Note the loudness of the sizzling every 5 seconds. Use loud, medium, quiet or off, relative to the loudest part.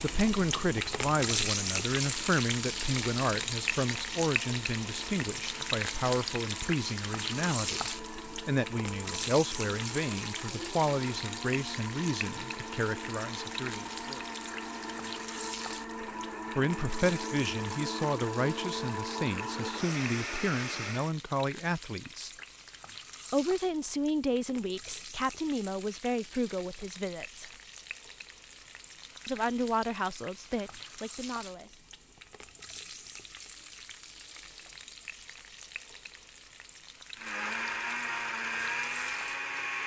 loud, loud, medium, medium, quiet, quiet, quiet, quiet.